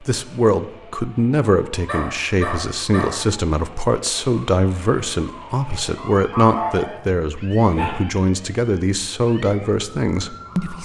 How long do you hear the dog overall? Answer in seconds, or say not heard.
3 s.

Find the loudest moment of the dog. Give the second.
7 s.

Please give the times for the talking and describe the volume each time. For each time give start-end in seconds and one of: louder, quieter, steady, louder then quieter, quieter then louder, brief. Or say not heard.
0.0-10.8 steady.